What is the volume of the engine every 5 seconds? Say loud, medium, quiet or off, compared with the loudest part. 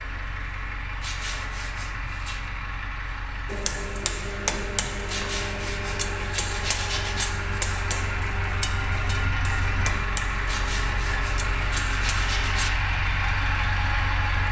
medium, loud, loud.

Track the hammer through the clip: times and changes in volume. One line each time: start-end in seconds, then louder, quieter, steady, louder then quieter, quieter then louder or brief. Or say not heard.
3.5-12.7 quieter.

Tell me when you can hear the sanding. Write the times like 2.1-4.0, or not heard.
1.0-2.5, 5.0-7.3, 10.4-12.8.